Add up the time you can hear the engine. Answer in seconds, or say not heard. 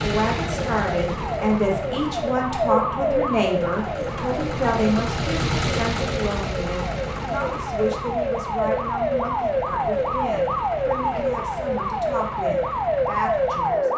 14 s.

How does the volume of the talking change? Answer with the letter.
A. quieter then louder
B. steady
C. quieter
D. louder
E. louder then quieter
C.